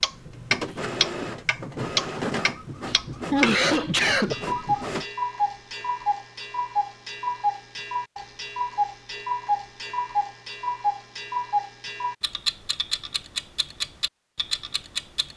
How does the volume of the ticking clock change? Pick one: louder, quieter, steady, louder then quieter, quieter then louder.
quieter.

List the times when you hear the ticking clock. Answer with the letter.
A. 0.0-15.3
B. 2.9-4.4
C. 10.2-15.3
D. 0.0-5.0
A.